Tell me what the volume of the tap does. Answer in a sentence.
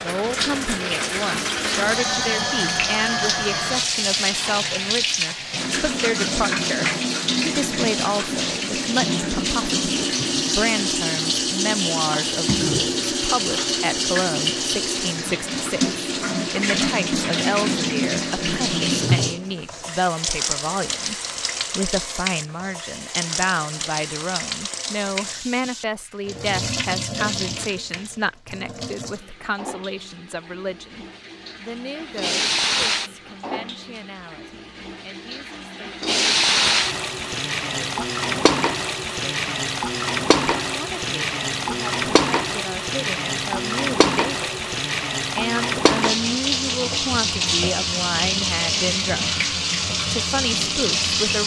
The volume of the tap goes down, then up.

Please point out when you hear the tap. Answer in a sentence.
You can hear the tap from 0.0 to 51.4 s.